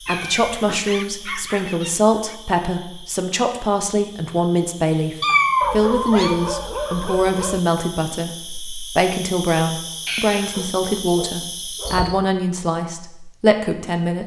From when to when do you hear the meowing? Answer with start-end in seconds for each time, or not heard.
0.1-0.8, 5.2-6.3, 10.1-10.6.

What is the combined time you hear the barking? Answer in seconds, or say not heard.
6 s.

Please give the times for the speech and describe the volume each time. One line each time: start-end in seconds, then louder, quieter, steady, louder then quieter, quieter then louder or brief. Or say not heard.
0.0-14.2 steady.